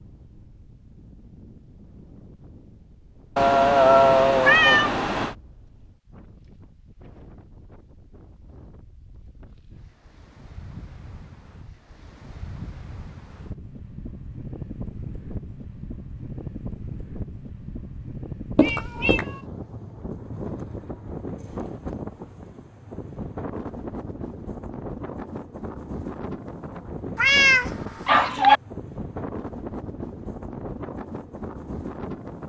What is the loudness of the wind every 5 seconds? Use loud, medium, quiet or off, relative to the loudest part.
quiet, quiet, medium, loud, loud, loud, loud.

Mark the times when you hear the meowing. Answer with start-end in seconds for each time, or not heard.
3.4-5.3, 18.6-19.2, 27.1-28.6.